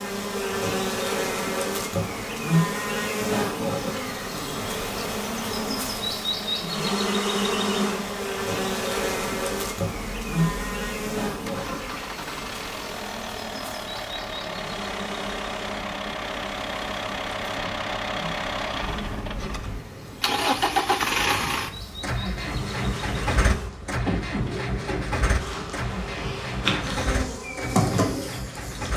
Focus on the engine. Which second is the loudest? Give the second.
21 s.